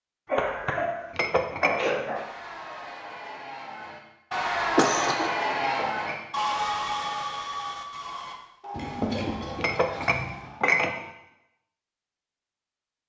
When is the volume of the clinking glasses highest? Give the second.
11 s.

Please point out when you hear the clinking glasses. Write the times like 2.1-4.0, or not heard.
1.1-2.0, 5.7-6.2, 9.6-11.1.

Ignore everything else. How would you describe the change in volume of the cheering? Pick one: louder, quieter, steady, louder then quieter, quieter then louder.
louder then quieter.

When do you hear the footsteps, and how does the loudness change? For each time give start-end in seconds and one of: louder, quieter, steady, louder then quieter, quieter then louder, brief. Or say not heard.
not heard.